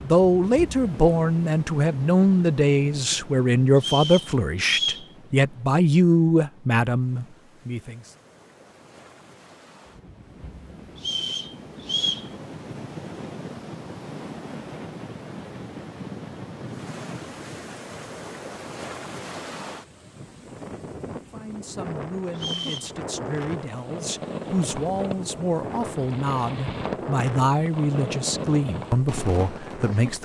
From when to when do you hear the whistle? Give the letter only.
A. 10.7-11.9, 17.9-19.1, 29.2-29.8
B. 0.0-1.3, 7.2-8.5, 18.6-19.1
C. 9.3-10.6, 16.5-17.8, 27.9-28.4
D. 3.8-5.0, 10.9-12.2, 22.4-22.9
D.